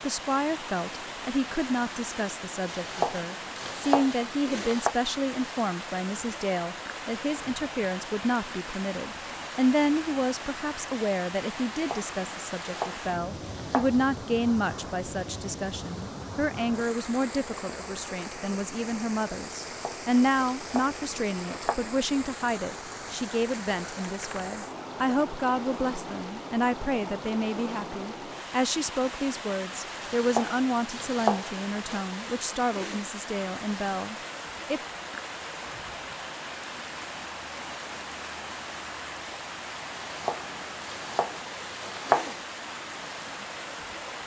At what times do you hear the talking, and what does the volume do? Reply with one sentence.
The talking can be heard from 0.0 to 34.8 s, at a steady volume.